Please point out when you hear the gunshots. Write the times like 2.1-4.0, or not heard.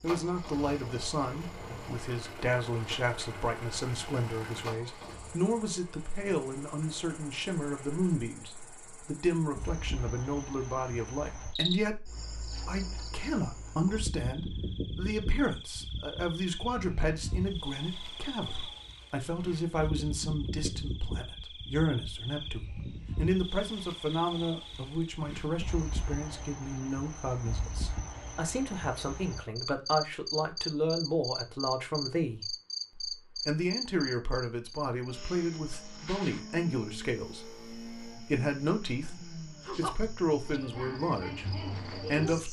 not heard.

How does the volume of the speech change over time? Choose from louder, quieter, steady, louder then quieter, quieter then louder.
steady.